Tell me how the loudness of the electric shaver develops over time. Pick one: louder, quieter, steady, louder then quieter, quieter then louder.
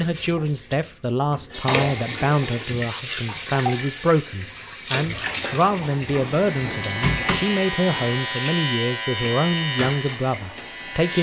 quieter.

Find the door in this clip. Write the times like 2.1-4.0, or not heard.
1.5-1.9, 6.1-7.4.